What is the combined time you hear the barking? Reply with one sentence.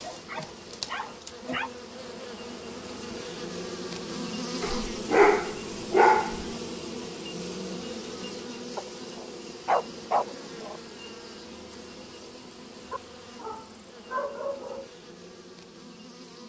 The barking can be heard for 8 seconds in total.